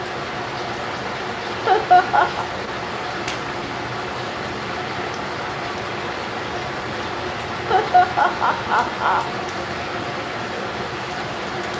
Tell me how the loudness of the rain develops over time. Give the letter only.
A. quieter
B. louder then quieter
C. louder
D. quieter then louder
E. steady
E.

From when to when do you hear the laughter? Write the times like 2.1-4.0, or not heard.
1.5-2.5, 7.7-9.2.